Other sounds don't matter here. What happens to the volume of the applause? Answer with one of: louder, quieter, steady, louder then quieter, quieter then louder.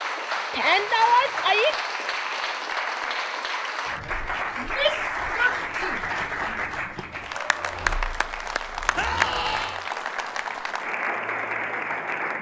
steady.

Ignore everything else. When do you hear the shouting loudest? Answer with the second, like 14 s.
1 s.